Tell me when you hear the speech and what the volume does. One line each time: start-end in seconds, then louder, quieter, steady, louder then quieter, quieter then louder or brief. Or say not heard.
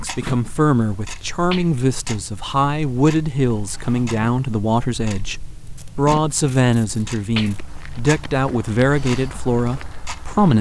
0.0-10.5 steady.